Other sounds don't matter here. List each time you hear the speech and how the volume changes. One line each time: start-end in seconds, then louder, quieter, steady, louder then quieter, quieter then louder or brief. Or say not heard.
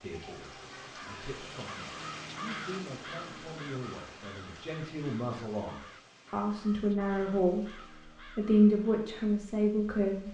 0.0-10.2 louder.